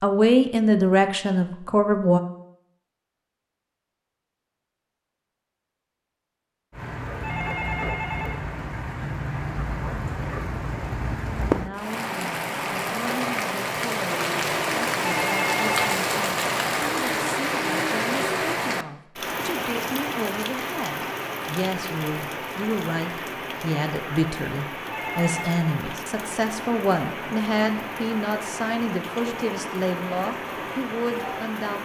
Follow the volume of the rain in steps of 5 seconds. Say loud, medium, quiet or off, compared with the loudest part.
off, medium, loud, loud, medium, medium, medium.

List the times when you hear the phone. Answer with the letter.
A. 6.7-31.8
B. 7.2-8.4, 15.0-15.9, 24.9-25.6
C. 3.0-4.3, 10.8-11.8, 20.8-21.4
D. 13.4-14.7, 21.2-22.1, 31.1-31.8
B.